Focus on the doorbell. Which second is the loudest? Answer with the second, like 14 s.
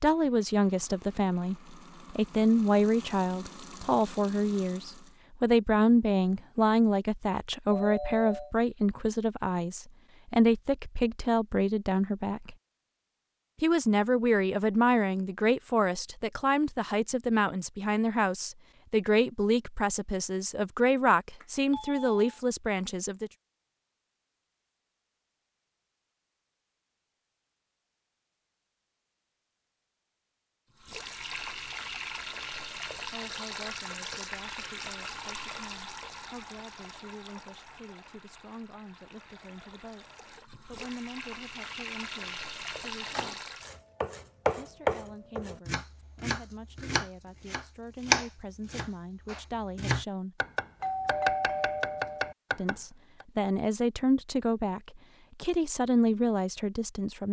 51 s.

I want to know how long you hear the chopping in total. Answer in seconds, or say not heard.
10 s.